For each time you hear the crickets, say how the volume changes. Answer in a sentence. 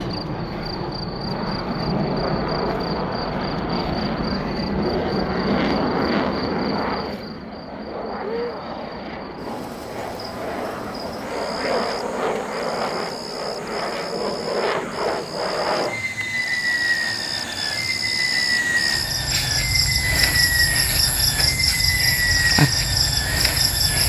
You can hear the crickets from 0.0 to 24.0 s, getting louder.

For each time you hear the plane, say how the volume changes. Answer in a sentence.
The plane can be heard from 0.0 to 24.0 s, at a steady volume.